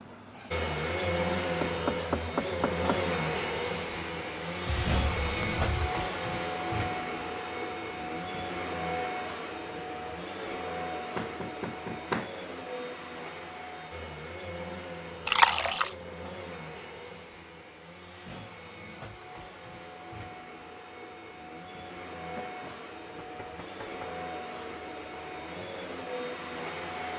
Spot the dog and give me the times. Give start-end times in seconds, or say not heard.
not heard.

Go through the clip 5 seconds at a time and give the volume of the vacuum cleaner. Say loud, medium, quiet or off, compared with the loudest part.
loud, loud, medium, quiet, medium, medium.